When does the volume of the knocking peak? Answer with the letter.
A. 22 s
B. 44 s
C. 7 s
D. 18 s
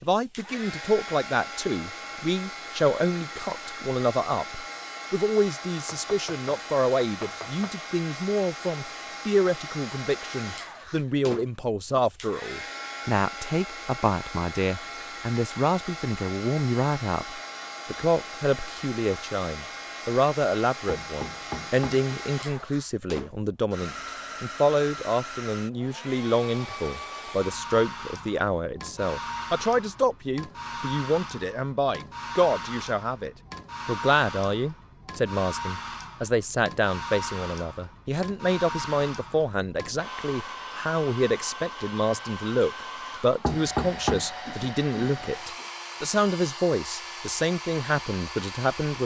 B.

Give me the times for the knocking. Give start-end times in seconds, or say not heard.
6.0-7.7, 20.9-22.1, 43.4-44.2.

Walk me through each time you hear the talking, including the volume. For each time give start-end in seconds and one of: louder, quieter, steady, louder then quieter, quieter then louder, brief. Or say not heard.
0.0-49.0 steady.